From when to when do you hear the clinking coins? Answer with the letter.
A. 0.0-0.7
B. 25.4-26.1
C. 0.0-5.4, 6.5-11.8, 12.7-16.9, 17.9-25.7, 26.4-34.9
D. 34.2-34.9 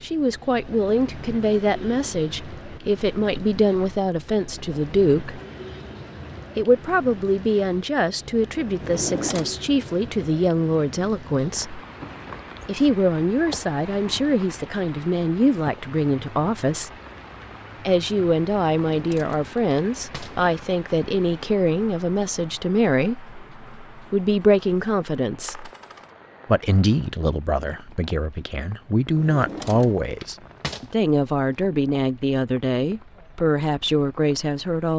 B.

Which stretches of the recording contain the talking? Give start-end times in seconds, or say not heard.
0.0-5.4, 6.5-11.8, 12.7-16.9, 17.9-25.7, 26.4-34.9.